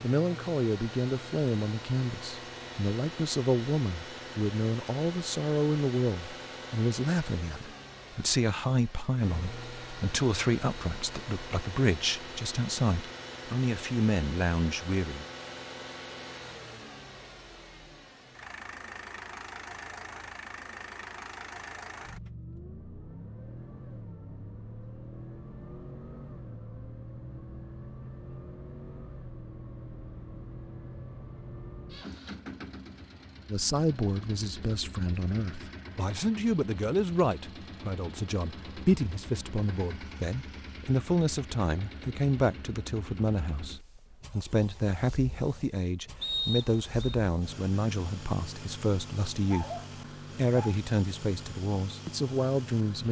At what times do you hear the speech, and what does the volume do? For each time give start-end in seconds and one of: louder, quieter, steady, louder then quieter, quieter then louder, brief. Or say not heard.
0.0-15.2 steady
33.5-53.0 steady.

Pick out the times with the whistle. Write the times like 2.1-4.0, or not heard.
46.2-47.1.